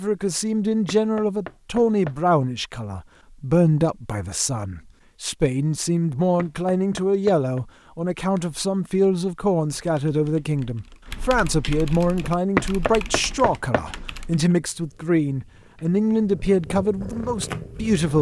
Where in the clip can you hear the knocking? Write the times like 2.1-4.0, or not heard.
0.8-2.2, 6.3-7.6, 12.6-13.8.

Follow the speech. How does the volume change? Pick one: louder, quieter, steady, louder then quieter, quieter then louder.
steady.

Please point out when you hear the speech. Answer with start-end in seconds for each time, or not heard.
0.0-18.1.